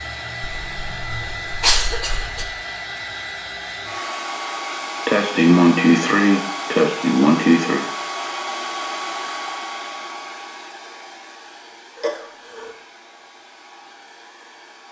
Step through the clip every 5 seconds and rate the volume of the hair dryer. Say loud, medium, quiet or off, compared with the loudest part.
loud, loud, quiet.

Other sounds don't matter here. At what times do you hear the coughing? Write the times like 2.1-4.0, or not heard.
0.5-2.5, 5.0-7.8, 11.9-12.7.